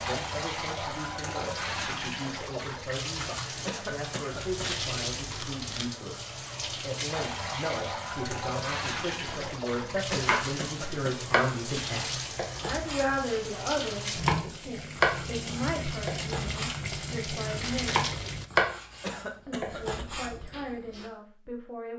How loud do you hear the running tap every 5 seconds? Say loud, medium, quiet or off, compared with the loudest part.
loud, loud, loud, loud, off.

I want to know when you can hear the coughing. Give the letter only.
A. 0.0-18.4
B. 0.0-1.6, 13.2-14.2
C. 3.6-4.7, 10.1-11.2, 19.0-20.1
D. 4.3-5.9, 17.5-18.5
C.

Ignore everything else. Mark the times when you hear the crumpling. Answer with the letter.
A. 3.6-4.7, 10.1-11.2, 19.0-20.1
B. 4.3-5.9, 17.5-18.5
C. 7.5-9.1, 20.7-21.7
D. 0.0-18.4
B.